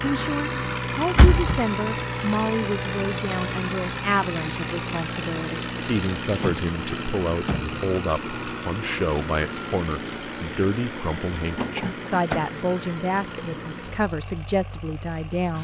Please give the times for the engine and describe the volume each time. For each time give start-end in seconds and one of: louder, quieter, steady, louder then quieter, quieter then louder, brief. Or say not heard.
0.0-15.6 quieter.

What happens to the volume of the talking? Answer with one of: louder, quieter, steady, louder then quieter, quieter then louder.
steady.